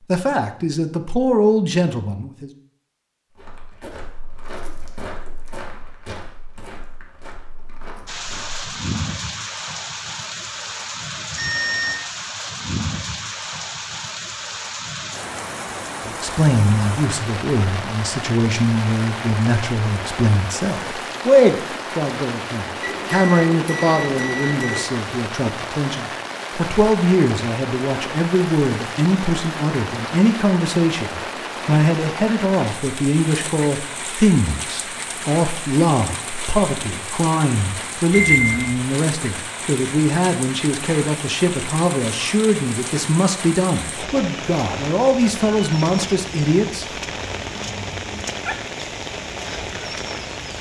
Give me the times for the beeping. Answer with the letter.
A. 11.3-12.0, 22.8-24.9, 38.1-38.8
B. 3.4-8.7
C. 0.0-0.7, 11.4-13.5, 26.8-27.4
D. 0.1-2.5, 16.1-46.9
A.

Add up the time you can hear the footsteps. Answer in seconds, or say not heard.
5 s.